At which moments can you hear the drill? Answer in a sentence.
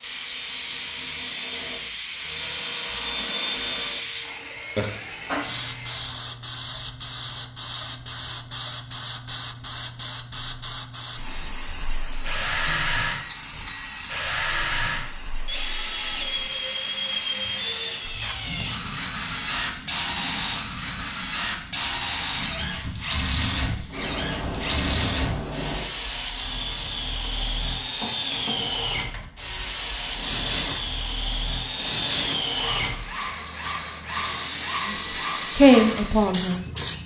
The drill can be heard from 0.0 to 6.2 s and from 11.7 to 37.0 s.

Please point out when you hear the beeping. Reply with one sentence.
You can hear the beeping from 12.7 to 14.1 s.